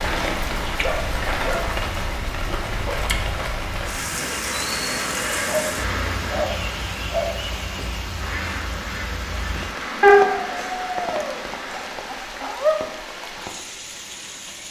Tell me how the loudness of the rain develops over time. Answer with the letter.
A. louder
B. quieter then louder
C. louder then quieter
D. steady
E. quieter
E.